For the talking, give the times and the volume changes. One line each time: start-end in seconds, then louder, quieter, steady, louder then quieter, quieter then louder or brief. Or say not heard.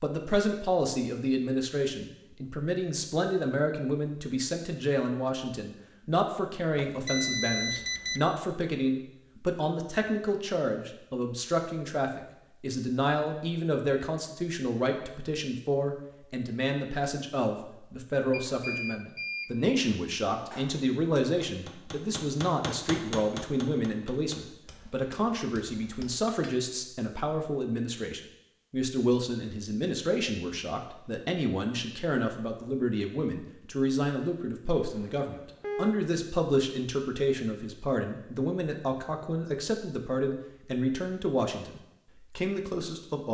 0.0-43.2 steady.